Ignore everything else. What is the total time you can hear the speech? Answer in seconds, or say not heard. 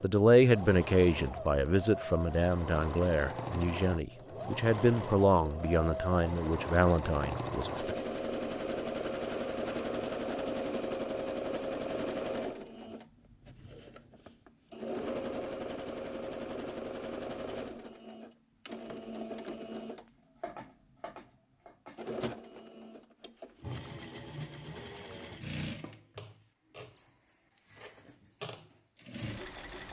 8 s.